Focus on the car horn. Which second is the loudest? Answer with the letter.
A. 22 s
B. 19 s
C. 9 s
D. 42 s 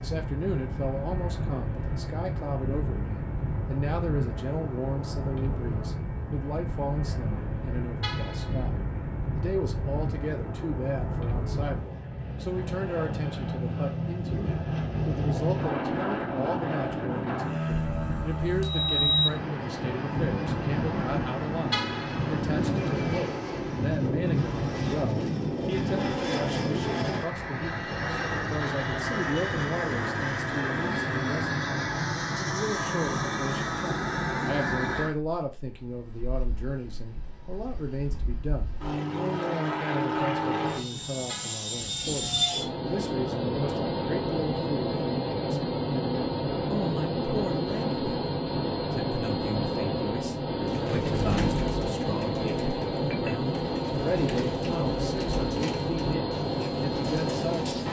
A.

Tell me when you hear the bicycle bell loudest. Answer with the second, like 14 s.
19 s.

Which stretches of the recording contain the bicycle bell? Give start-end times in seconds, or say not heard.
17.7-19.3.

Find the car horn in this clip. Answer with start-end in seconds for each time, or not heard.
8.0-8.7, 21.7-22.4, 41.2-41.7.